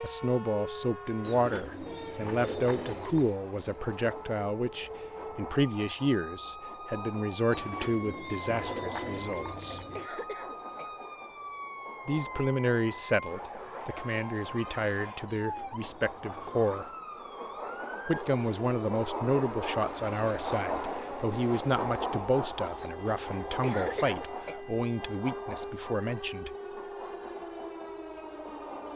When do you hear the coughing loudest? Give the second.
24 s.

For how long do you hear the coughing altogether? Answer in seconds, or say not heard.
2 s.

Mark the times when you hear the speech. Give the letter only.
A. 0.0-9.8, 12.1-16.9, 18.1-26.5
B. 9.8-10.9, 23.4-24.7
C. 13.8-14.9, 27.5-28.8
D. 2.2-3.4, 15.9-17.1
A.